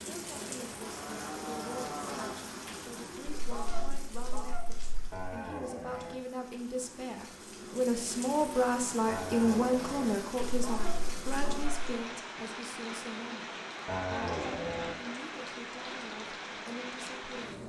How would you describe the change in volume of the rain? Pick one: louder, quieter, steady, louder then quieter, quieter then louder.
quieter then louder.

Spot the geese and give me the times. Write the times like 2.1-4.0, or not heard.
3.2-5.2, 10.5-11.9.